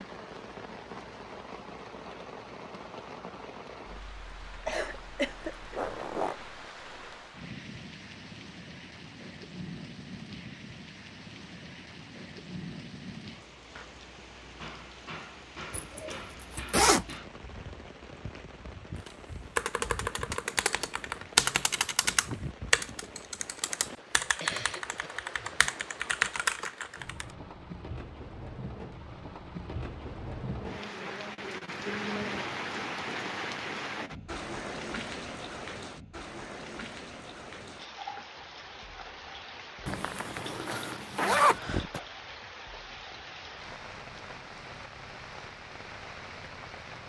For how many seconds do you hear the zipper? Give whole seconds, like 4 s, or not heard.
5 s.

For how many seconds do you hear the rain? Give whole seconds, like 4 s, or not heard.
47 s.